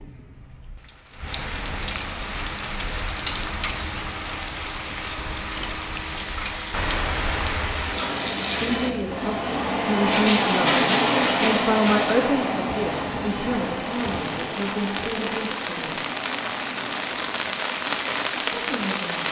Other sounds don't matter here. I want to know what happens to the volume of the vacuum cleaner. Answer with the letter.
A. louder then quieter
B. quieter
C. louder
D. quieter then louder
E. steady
A.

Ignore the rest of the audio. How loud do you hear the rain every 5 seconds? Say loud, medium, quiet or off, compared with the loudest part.
medium, medium, medium, loud.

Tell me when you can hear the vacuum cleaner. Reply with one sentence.
You can hear the vacuum cleaner from 2.2 to 19.2 s.